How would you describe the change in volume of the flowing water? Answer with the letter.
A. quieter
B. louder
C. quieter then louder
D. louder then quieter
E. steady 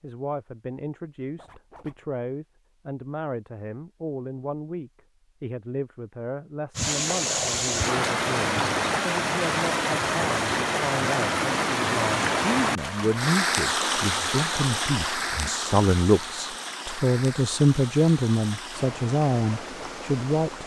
A.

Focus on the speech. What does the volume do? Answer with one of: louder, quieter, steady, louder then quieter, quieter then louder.
louder.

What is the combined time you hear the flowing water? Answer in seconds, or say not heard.
14 s.